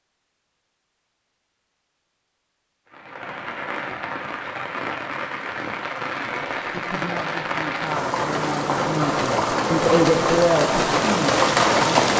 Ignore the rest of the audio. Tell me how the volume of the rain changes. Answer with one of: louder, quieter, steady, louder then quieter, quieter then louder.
louder.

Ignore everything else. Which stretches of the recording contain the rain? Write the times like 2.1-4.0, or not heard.
2.9-12.1.